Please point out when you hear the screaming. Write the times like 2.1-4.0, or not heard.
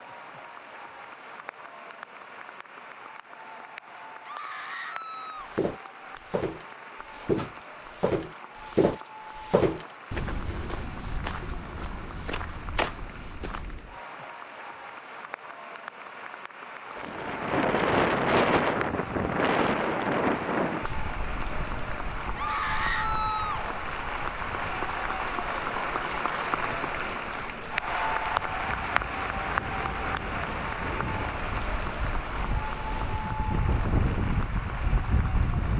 4.2-5.5, 22.4-23.6.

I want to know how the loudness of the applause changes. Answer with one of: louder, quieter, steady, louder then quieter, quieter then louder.
louder.